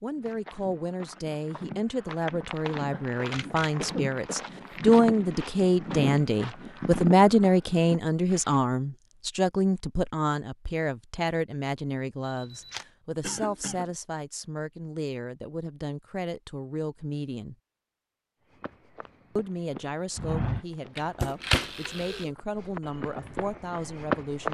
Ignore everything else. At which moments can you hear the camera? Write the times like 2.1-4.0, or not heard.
3.3-4.0, 12.2-12.8, 20.9-22.2.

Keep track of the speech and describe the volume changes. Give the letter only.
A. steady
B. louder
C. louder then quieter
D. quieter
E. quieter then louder
C.